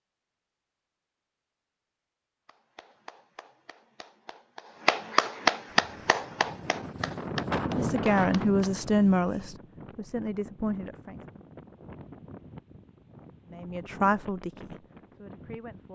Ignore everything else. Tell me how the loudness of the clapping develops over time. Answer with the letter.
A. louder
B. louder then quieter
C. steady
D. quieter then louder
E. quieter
B.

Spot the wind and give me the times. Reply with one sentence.
The wind can be heard from 5.8 to 15.9 s.